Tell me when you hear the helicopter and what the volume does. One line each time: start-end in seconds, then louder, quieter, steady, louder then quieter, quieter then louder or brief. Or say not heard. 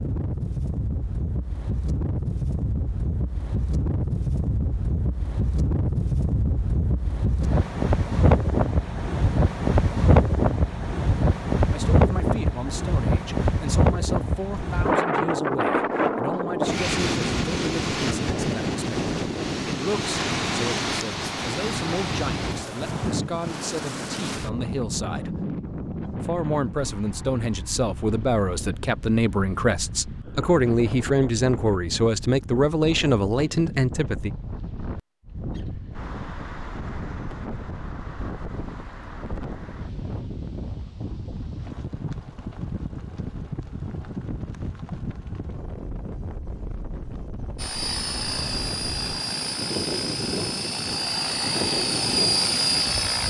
47.5-53.2 louder.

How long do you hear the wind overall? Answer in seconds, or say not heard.
53 s.